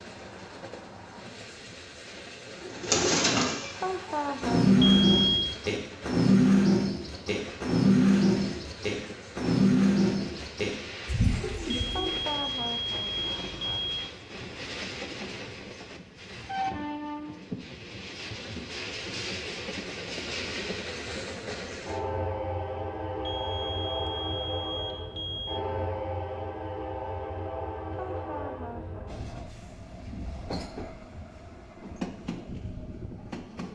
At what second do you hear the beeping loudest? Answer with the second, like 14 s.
5 s.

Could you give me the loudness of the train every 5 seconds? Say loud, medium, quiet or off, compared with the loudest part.
medium, medium, medium, loud, loud, loud, medium.